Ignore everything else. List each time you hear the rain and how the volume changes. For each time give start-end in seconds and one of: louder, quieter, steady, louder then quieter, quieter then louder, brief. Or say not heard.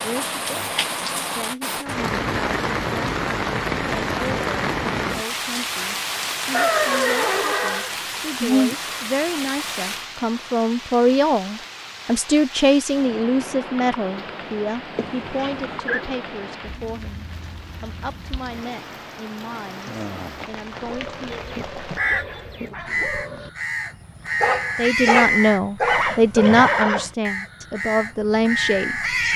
0.0-22.0 quieter.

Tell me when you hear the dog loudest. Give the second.
25 s.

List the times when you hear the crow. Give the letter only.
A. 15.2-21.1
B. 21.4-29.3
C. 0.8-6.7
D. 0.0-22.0
B.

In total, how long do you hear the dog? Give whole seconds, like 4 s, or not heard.
6 s.